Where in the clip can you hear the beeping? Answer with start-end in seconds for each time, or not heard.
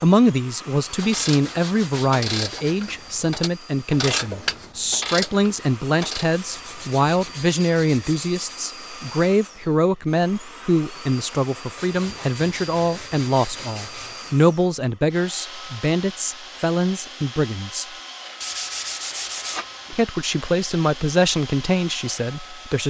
not heard.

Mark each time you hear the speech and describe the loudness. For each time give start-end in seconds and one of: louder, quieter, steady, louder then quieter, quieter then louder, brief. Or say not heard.
0.0-17.9 steady
19.9-22.8 brief.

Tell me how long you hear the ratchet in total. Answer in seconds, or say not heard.
5 s.